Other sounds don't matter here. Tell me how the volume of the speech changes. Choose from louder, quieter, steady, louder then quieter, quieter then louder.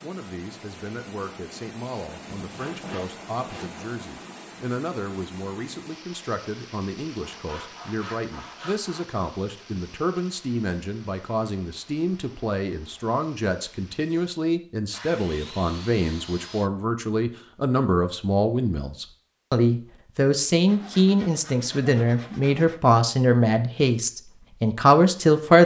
louder.